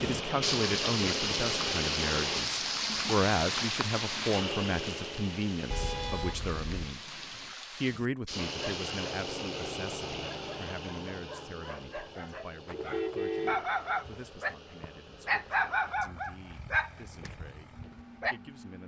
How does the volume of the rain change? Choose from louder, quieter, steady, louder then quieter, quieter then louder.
quieter.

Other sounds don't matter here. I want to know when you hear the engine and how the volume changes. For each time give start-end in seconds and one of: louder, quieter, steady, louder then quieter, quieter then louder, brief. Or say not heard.
0.0-2.5 brief
4.3-6.1 brief
8.2-18.8 quieter.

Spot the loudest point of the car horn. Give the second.
13 s.